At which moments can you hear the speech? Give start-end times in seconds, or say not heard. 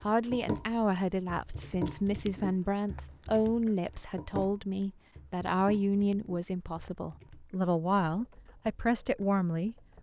0.1-9.8.